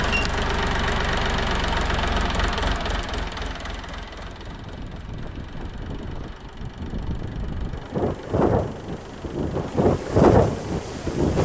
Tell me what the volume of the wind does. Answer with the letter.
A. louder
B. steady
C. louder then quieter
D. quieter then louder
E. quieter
A.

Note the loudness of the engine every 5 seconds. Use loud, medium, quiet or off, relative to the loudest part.
loud, quiet, off.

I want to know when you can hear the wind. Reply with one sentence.
You can hear the wind from 4.2 to 11.4 s.